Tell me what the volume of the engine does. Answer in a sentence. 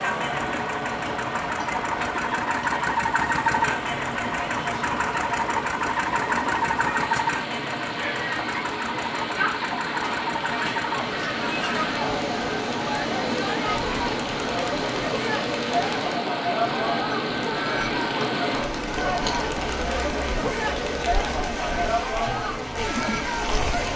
The loudness of the engine goes down.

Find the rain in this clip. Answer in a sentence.
The rain can be heard from 0.1 to 23.9 s.